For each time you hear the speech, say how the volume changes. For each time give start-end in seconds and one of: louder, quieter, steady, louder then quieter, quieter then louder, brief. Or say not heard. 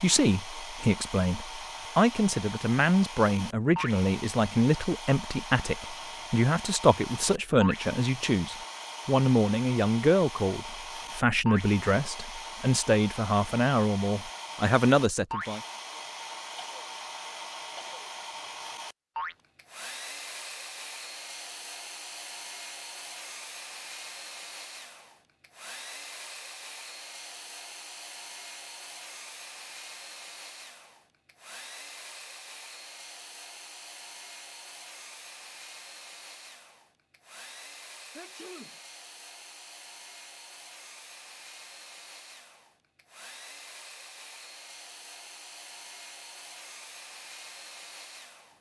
0.0-15.6 steady.